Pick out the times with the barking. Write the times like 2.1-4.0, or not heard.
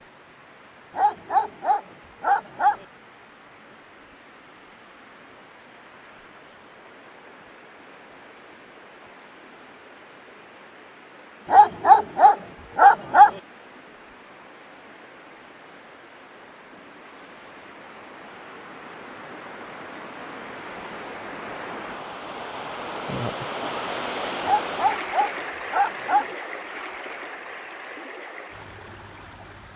0.9-2.8, 11.5-13.3, 24.4-26.2.